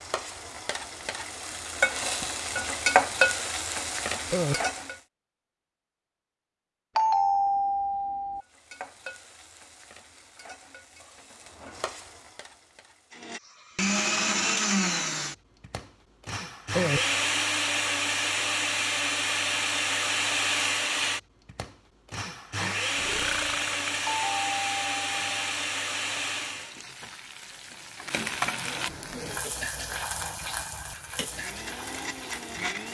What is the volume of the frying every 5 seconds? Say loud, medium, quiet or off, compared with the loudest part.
loud, quiet, quiet, off, off, medium, medium.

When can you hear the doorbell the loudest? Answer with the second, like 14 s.
7 s.